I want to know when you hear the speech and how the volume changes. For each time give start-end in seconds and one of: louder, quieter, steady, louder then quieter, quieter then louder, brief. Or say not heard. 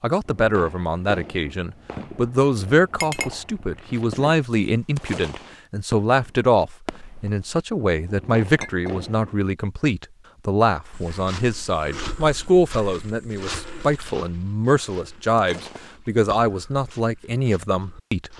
0.0-18.3 steady.